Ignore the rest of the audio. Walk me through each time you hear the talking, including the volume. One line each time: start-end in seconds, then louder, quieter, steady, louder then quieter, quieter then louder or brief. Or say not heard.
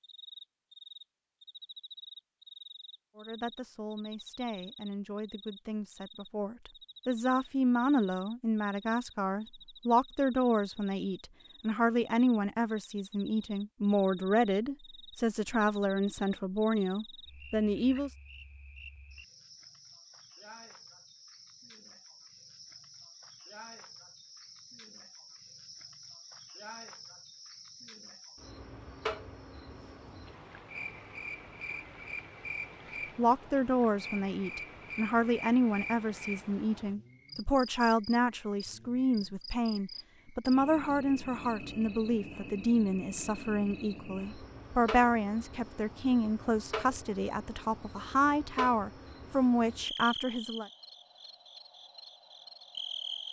3.1-18.1 louder
33.1-50.7 steady.